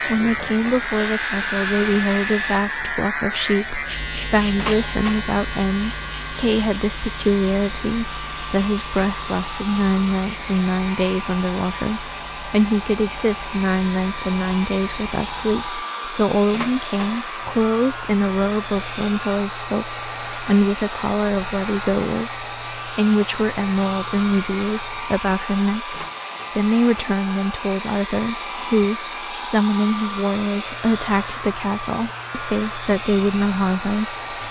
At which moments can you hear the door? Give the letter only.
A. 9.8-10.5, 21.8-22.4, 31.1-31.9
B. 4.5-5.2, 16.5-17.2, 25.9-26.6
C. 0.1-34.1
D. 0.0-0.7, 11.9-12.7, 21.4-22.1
B.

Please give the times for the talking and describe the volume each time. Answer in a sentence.
You can hear the talking from 0.1 to 34.1 s, at a steady volume.